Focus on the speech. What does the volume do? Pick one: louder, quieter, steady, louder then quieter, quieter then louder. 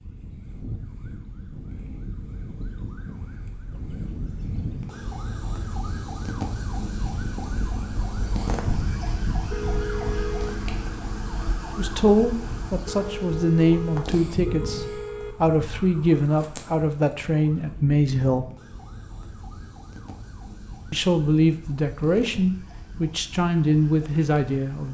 steady.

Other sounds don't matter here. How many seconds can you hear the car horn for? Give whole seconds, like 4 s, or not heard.
4 s.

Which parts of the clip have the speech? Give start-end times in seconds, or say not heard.
11.8-18.5, 20.9-24.8.